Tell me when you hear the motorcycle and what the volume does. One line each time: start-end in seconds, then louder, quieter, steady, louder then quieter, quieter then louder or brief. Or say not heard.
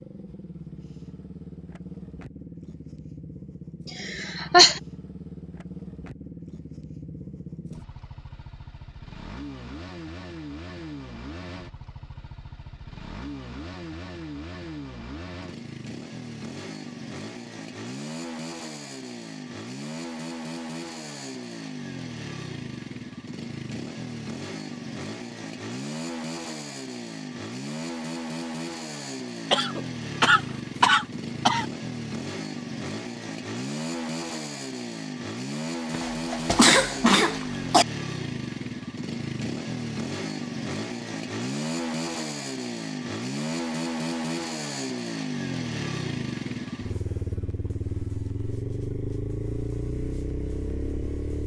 0.0-51.4 louder.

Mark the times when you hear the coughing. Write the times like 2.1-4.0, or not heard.
3.9-4.8, 29.5-31.6, 35.9-37.9.